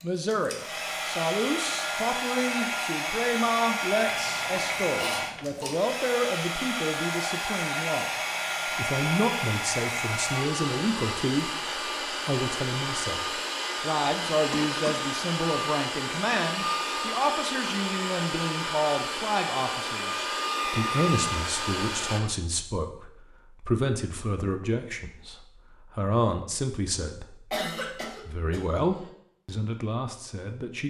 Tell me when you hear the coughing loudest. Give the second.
28 s.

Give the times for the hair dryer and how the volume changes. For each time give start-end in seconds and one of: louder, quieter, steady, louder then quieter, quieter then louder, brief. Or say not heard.
0.0-22.2 steady.